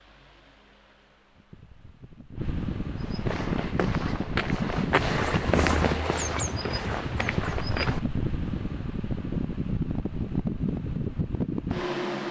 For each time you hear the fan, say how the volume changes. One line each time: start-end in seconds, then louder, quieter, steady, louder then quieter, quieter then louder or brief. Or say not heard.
0.0-12.2 louder.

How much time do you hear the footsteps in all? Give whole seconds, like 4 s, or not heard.
5 s.